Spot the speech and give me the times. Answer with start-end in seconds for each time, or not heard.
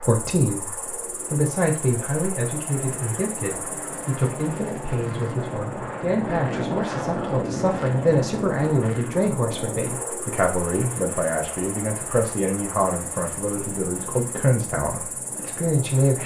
0.0-16.2.